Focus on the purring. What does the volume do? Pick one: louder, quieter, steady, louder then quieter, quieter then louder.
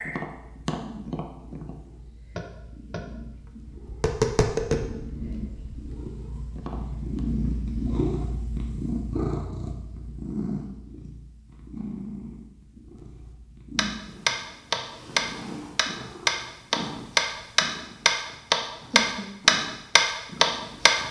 louder then quieter.